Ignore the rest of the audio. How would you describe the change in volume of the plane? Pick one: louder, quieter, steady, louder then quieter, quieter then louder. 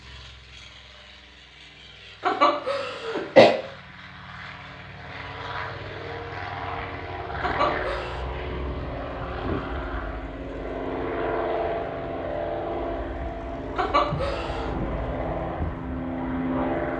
louder.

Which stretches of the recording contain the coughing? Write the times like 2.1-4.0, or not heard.
2.2-3.5, 7.4-8.2, 13.8-14.8.